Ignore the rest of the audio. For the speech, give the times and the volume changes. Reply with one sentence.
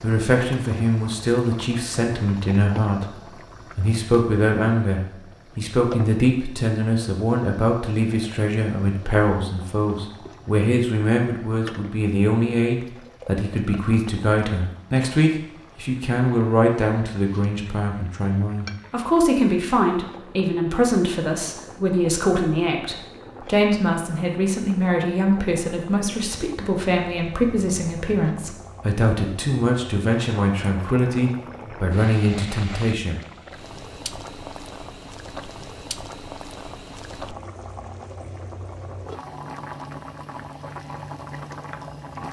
You can hear the speech from 0.0 to 33.2 s, at a steady volume.